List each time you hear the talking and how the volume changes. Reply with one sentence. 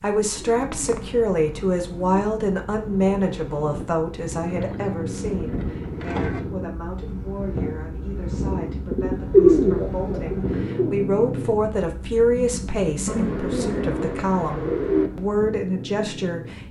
The talking can be heard from 0.0 to 16.6 s, getting quieter then louder.